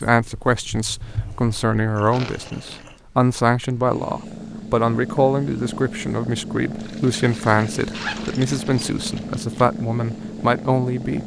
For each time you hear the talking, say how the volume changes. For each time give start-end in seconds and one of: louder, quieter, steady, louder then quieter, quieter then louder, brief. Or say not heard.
0.0-11.2 steady.